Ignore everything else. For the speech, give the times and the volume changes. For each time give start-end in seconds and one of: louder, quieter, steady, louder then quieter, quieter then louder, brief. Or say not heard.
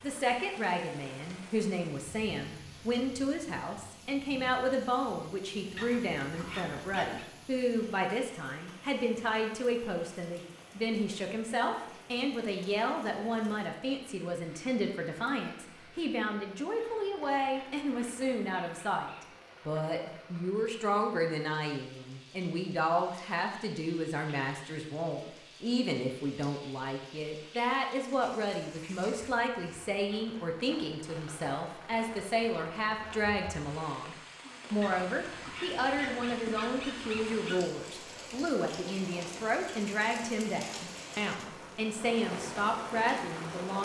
0.0-43.8 steady.